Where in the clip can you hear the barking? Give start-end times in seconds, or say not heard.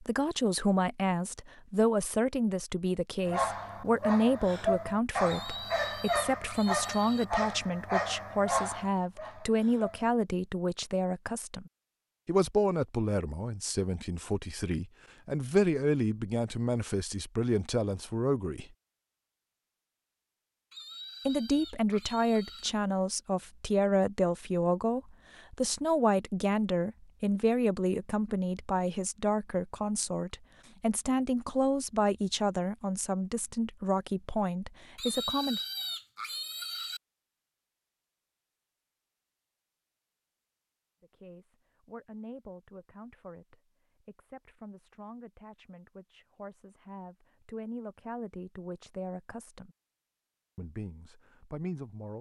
3.2-10.2.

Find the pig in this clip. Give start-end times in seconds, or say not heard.
5.2-7.2, 20.7-22.7, 35.0-37.0.